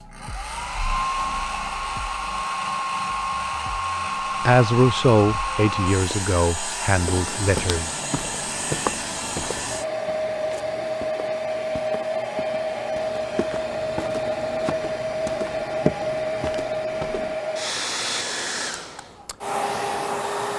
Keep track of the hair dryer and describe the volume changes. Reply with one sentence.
The loudness of the hair dryer stays about the same.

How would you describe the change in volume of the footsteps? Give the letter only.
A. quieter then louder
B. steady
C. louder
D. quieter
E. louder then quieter
A.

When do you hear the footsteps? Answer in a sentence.
The footsteps can be heard from 7.0 to 17.4 s.